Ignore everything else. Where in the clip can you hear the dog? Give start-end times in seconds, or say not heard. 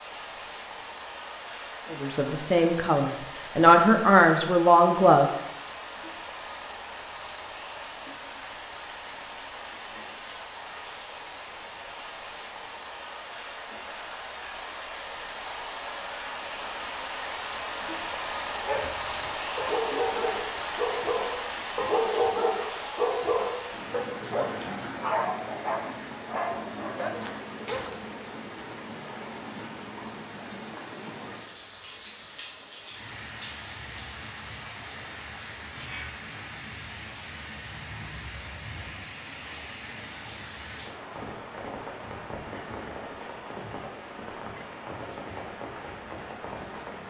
18.6-27.9.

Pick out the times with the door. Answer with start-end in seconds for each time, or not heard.
not heard.